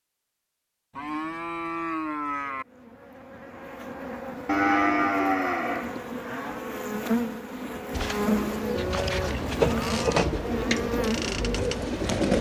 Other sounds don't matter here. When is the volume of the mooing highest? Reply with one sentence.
The volume of the mooing peaks at 5 seconds.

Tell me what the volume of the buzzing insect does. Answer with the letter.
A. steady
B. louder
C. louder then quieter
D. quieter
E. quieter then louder
B.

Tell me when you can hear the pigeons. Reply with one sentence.
You can hear the pigeons from 7.9 to 12.3 s.